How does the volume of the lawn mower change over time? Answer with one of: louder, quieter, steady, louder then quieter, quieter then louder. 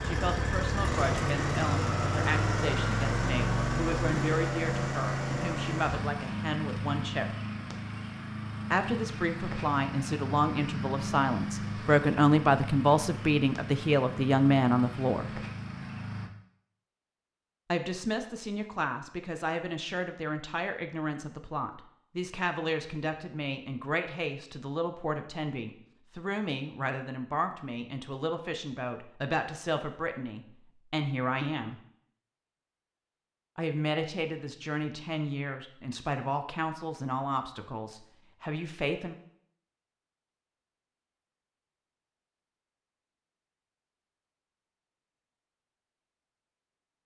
quieter.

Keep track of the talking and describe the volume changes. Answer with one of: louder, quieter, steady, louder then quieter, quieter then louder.
louder then quieter.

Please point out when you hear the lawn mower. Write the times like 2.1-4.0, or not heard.
0.0-16.3.